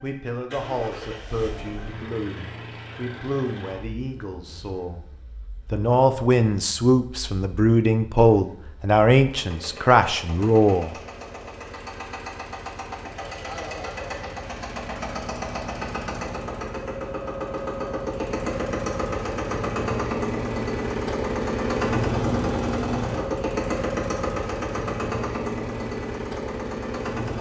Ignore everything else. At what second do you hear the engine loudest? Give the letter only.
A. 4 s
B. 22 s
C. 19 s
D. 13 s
B.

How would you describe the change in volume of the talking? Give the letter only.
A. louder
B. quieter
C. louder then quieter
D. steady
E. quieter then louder
A.